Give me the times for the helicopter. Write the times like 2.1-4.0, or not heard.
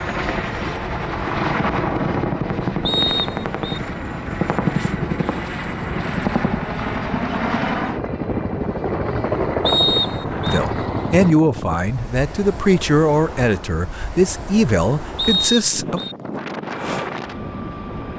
0.0-11.3, 16.6-18.1.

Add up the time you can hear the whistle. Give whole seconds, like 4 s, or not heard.
3 s.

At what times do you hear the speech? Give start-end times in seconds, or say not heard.
10.4-16.0.